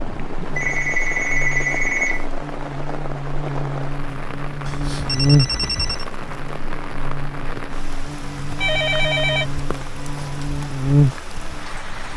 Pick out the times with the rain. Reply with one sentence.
You can hear the rain from 0.0 to 12.1 s.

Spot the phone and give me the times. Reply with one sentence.
You can hear the phone from 0.6 to 2.2 s, from 4.7 to 6.0 s and from 8.6 to 9.4 s.